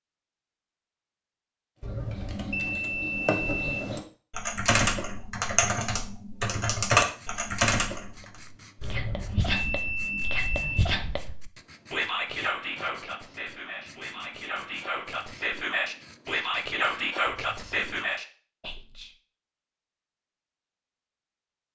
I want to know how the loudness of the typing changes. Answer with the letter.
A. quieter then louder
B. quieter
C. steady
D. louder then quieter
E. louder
E.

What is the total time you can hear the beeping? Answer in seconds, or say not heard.
5 s.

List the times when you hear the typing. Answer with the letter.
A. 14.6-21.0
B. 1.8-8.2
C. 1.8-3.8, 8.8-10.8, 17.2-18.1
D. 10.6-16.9
B.